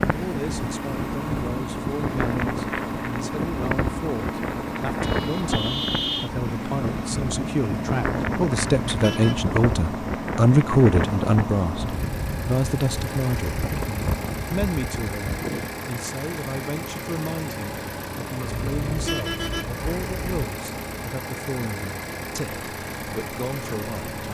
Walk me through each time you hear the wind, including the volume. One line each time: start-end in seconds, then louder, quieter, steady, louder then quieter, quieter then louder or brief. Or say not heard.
0.0-15.7 steady.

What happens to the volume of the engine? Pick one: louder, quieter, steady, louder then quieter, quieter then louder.
steady.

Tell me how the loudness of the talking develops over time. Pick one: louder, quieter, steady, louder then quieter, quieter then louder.
louder then quieter.